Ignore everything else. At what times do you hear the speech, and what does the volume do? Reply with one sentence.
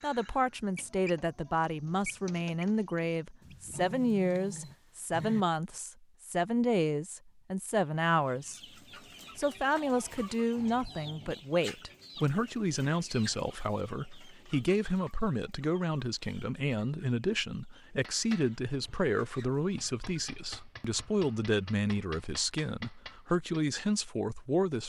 You can hear the speech from 0.0 to 8.6 s, at a steady volume; and from 9.3 to 24.8 s, at a steady volume.